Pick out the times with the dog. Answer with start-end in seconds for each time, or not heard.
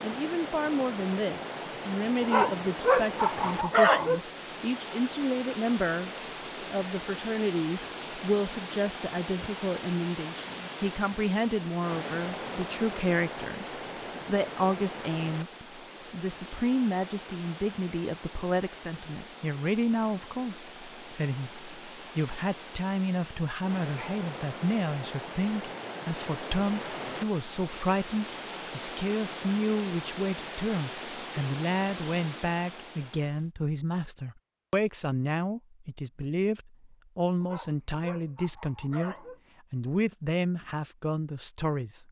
2.2-4.2, 37.4-39.4.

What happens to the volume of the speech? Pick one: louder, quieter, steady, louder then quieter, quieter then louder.
steady.